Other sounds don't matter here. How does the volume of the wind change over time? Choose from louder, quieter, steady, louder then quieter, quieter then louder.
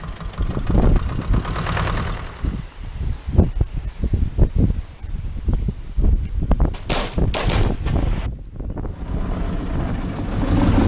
quieter.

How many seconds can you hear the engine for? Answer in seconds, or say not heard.
5 s.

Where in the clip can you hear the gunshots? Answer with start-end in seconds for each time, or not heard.
6.7-8.3.